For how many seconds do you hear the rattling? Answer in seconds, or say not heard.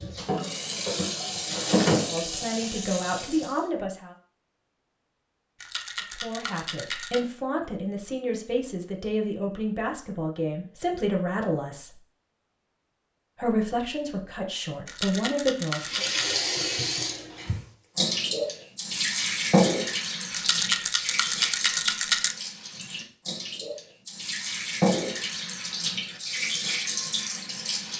5 s.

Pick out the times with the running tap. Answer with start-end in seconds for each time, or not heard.
0.0-3.6, 15.7-27.9.